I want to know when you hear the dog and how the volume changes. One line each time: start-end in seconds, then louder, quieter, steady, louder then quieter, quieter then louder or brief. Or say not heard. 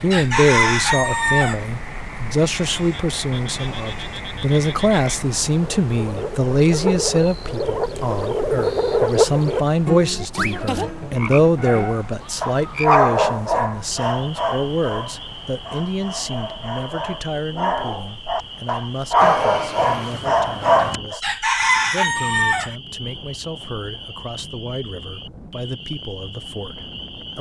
11.6-21.2 quieter then louder.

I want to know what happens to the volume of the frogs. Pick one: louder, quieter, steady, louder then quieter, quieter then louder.
louder then quieter.